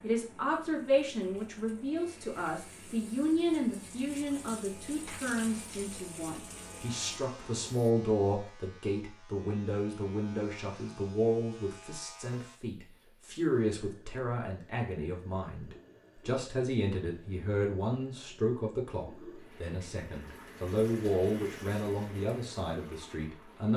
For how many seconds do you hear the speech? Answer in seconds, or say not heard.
24 s.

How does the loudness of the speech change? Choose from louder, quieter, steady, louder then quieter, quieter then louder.
steady.